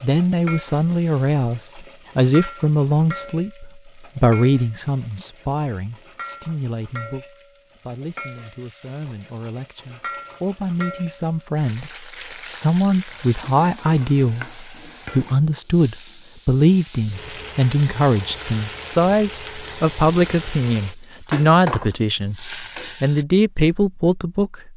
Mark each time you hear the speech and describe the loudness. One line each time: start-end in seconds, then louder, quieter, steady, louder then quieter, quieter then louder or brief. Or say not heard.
0.0-24.7 quieter then louder.